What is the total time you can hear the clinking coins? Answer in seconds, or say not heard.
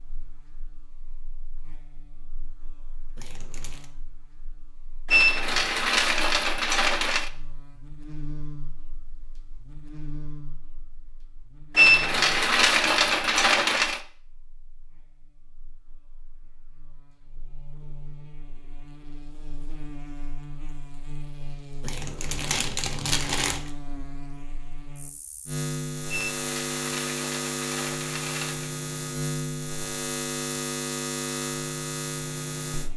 7 s.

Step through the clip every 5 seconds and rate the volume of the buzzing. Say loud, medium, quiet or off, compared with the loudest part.
quiet, quiet, quiet, quiet, medium, loud, loud.